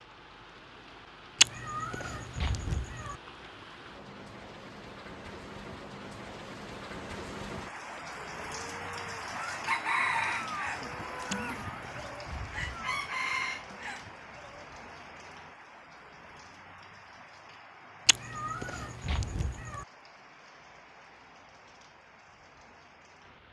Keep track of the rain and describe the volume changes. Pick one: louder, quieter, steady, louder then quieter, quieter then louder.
louder then quieter.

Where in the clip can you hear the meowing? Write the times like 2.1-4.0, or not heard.
1.4-3.1, 11.3-12.9, 18.1-19.9.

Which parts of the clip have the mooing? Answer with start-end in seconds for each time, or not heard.
7.9-14.7.